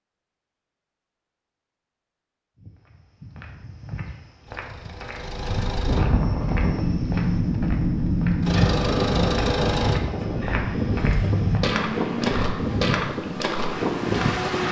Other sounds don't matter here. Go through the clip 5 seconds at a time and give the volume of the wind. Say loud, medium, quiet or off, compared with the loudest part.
off, loud, loud.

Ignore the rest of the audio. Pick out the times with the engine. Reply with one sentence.
You can hear the engine from 4.5 to 6.0 s and from 8.4 to 14.6 s.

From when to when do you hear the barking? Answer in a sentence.
You can't hear the barking here.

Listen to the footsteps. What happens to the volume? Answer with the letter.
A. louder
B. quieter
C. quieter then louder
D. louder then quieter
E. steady
A.